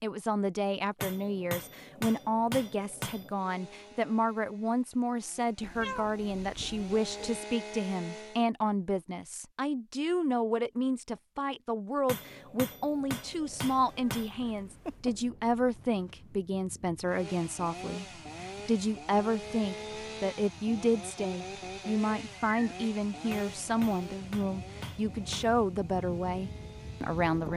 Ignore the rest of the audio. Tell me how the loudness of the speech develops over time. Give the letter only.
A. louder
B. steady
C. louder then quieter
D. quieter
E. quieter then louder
B.